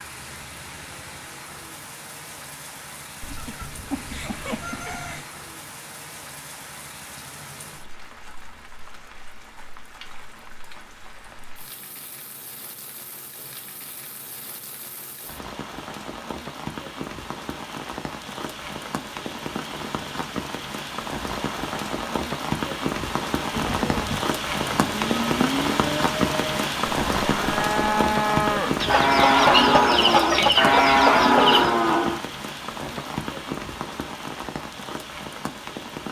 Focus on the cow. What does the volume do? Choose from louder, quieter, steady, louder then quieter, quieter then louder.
louder.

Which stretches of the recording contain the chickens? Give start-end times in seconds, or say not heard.
3.2-5.2, 28.8-31.8.